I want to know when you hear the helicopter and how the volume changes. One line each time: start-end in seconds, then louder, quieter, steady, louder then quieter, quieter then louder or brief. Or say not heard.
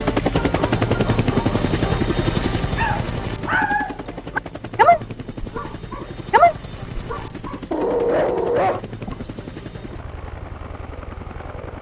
0.0-11.7 quieter.